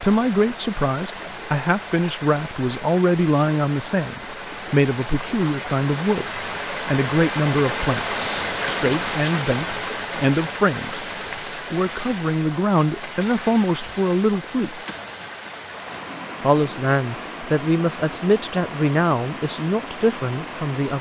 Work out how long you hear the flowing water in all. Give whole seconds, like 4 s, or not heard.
21 s.